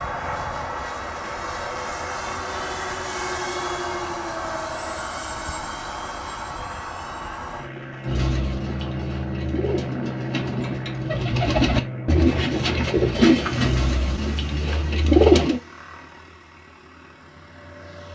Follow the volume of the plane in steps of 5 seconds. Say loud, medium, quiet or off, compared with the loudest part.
loud, loud, loud, quiet.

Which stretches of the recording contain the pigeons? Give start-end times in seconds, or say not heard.
8.1-15.6.